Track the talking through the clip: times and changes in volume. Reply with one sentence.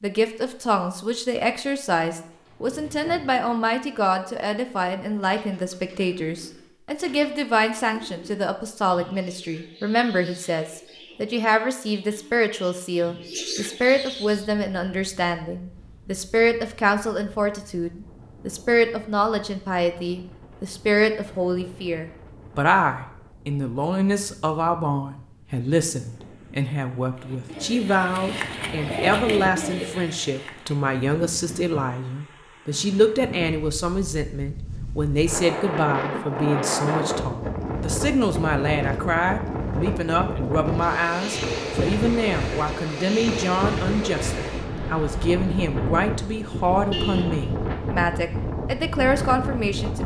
The talking can be heard from 0.0 to 50.0 s, at a steady volume.